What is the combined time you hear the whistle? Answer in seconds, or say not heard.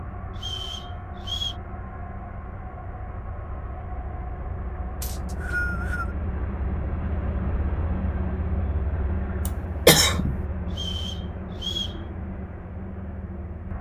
4 s.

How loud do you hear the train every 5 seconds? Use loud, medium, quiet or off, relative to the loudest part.
medium, loud, loud.